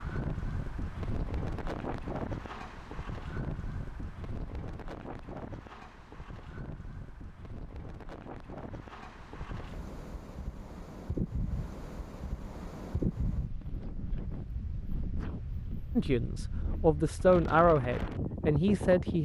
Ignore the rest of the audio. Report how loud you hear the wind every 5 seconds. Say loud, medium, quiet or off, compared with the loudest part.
loud, medium, loud, loud.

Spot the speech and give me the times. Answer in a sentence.
You can hear the speech from 15.9 to 19.1 s.